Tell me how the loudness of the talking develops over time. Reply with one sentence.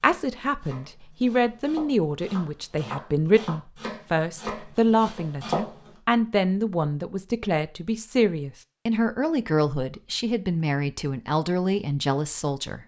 The loudness of the talking stays about the same.